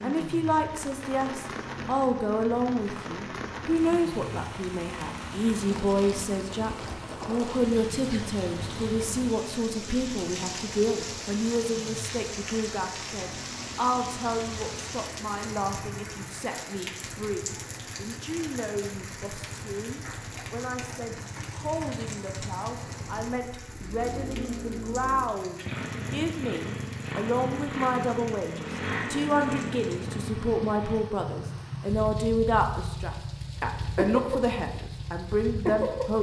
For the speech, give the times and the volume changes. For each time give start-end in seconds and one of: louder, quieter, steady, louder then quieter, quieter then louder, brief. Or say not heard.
0.0-36.1 quieter then louder.